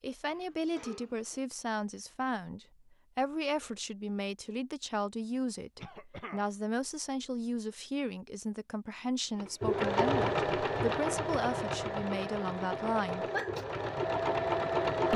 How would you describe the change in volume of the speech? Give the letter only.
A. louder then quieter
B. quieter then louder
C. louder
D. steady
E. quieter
D.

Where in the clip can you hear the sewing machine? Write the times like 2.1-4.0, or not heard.
9.3-15.1.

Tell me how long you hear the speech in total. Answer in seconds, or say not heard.
13 s.